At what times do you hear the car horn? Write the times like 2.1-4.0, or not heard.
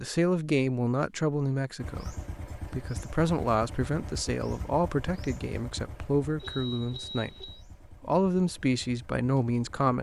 6.3-7.7.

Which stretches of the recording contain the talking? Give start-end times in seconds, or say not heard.
0.0-9.9.